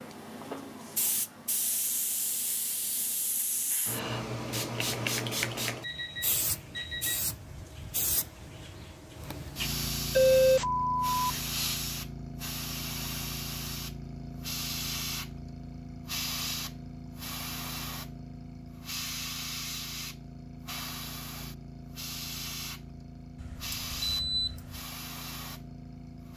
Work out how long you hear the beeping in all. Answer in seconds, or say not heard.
4 s.